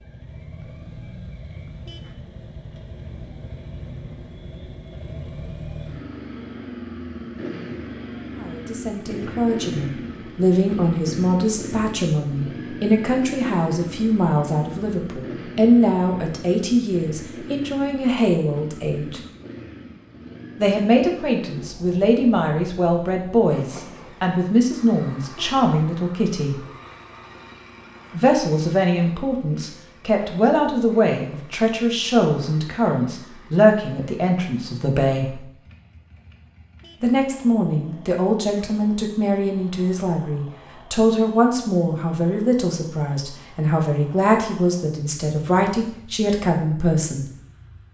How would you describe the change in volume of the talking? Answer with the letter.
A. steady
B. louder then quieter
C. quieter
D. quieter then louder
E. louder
A.